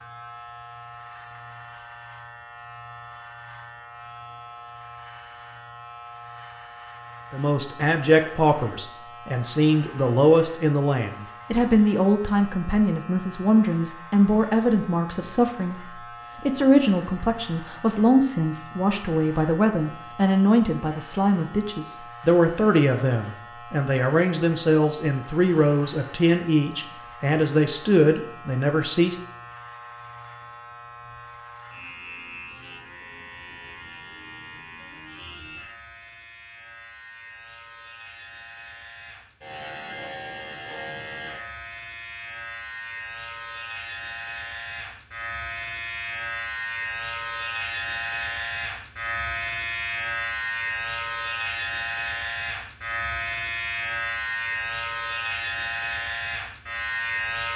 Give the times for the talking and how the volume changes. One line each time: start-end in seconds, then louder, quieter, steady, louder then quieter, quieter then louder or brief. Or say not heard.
7.3-29.1 steady.